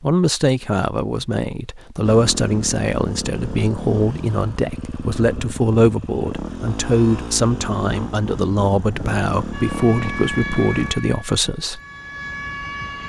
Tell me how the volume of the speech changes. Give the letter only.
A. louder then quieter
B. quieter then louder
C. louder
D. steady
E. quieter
D.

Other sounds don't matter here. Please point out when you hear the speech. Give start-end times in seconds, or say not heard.
0.0-11.8.